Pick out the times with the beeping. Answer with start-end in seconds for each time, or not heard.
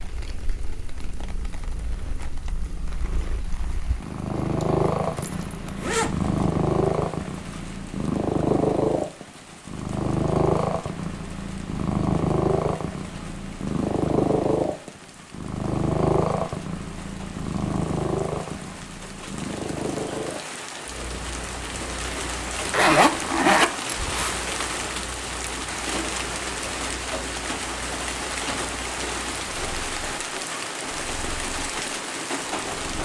not heard.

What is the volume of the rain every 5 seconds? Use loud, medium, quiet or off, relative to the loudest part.
quiet, quiet, quiet, quiet, loud, loud, loud.